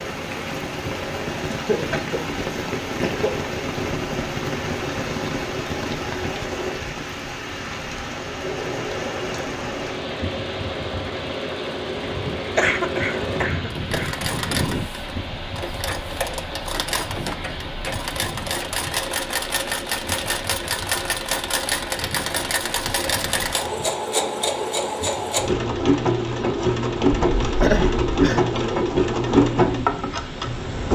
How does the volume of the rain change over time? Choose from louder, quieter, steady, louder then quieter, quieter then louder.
quieter.